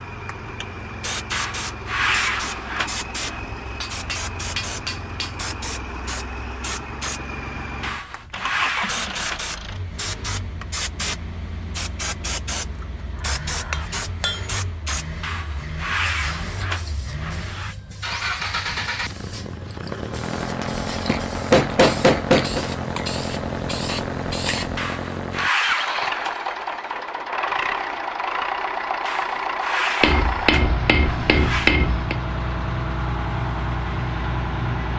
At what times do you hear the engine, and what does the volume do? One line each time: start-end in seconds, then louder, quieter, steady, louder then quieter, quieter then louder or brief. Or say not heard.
0.0-34.9 louder.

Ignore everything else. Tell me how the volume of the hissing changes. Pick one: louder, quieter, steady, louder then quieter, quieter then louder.
quieter then louder.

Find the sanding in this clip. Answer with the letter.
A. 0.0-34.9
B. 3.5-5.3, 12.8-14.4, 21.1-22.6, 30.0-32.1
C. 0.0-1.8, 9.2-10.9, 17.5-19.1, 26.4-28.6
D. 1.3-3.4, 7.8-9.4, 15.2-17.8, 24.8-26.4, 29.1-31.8
D.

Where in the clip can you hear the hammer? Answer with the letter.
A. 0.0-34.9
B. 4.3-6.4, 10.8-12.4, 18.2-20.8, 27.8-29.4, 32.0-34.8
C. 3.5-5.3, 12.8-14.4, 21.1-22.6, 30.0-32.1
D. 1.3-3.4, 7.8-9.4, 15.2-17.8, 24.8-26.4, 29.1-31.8
C.